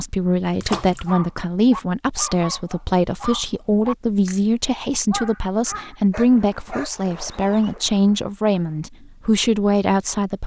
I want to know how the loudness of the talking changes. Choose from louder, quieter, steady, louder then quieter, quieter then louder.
steady.